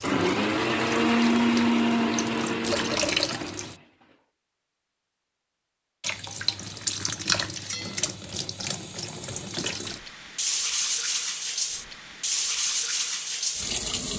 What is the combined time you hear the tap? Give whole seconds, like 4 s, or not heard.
12 s.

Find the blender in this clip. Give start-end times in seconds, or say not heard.
0.0-4.0.